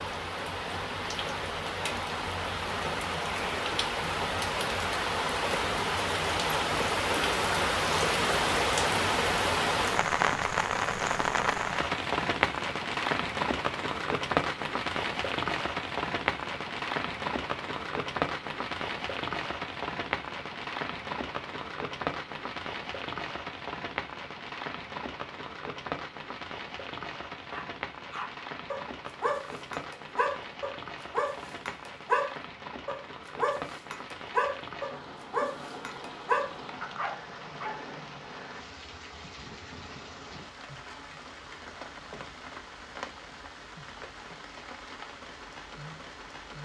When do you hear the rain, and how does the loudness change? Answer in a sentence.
The rain can be heard from 0.0 to 46.6 s, getting quieter.